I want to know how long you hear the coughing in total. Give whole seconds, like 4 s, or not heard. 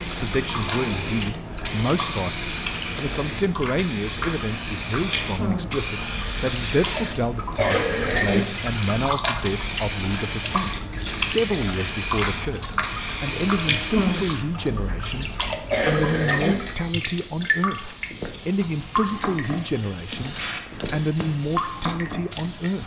2 s.